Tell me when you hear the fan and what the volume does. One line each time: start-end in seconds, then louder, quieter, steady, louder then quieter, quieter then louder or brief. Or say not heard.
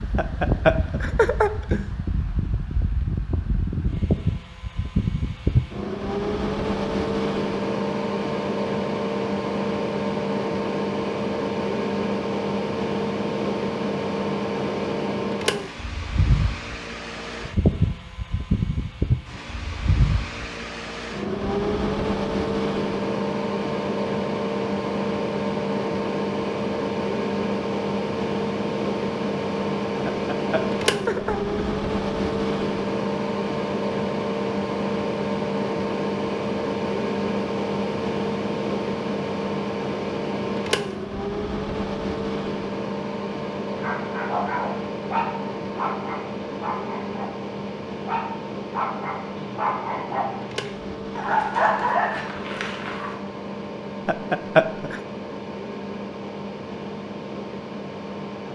0.0-58.5 quieter.